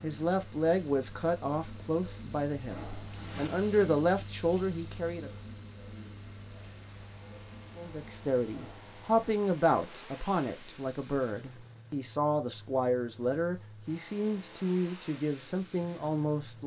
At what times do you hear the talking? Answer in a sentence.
The talking can be heard from 0.0 to 5.3 s and from 7.8 to 16.6 s.